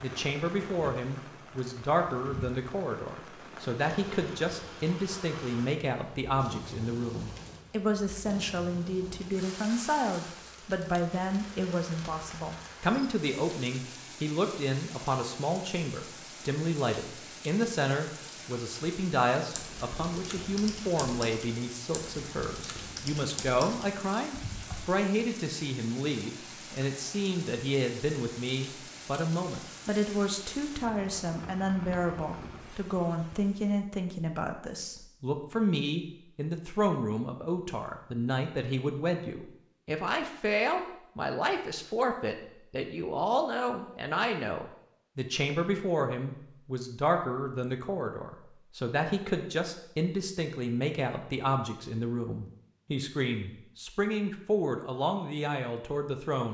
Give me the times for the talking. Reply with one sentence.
The talking can be heard from 0.0 to 56.5 s.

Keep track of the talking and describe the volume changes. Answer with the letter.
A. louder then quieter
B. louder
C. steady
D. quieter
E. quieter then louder
C.